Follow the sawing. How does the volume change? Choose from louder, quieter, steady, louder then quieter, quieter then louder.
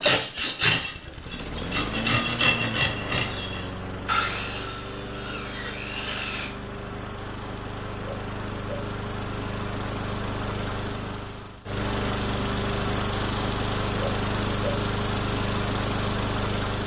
quieter.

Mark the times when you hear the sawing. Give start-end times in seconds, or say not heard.
0.0-6.5.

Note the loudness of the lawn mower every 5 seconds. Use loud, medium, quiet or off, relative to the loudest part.
medium, medium, loud, loud.